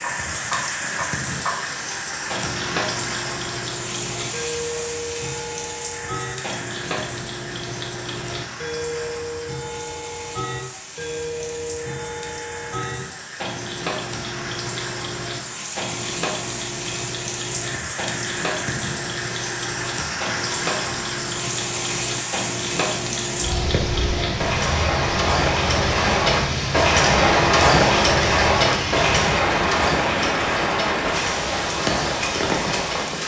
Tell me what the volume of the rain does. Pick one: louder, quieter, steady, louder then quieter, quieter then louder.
quieter then louder.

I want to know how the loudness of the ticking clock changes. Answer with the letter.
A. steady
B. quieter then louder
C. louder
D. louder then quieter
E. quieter
C.